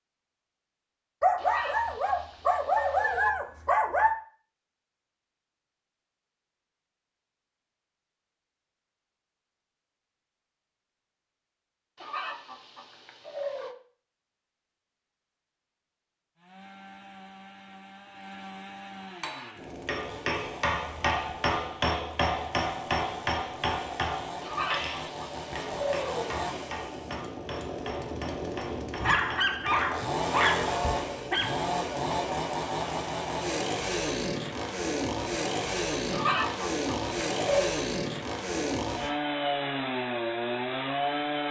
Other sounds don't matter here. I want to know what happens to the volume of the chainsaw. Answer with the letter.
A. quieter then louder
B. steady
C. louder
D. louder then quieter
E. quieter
C.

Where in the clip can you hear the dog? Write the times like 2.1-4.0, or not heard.
1.2-4.2, 29.0-31.6.